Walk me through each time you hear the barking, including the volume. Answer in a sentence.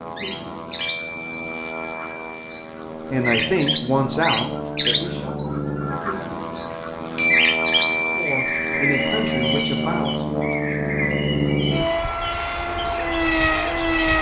You can't hear the barking here.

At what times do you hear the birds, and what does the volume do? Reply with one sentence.
The birds can be heard from 0.1 to 14.1 s, getting louder then quieter.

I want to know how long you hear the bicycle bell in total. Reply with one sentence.
The bicycle bell can be heard for 4 seconds in total.